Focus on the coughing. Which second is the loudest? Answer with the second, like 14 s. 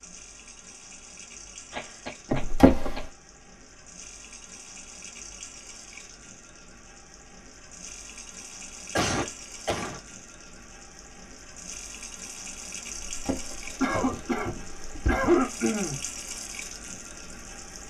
15 s.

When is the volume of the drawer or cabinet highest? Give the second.
3 s.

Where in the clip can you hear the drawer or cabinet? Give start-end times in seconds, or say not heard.
2.4-3.1, 13.1-15.3.